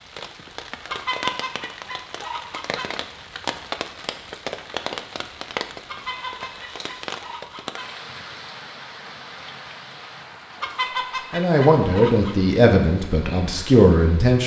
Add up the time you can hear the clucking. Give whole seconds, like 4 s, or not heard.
6 s.